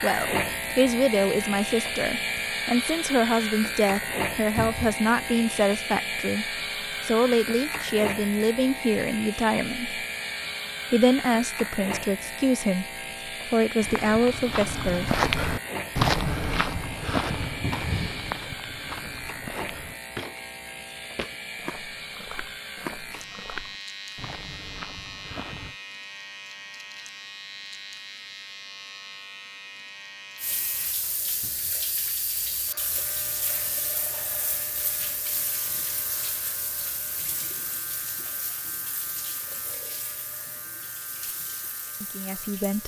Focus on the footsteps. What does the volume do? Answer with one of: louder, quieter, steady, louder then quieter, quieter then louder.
quieter.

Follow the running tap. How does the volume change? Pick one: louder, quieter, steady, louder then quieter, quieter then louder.
quieter.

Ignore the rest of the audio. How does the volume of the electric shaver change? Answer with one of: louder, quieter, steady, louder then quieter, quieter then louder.
quieter.